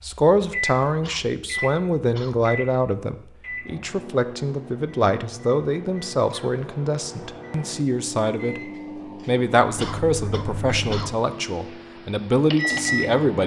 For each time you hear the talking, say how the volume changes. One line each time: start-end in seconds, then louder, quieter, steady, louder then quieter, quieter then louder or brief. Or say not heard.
0.0-13.4 steady.